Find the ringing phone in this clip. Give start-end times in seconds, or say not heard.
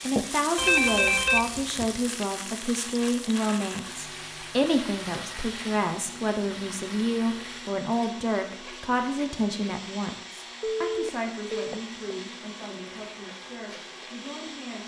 0.6-1.9, 10.6-11.8.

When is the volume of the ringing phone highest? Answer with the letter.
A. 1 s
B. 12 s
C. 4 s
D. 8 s
A.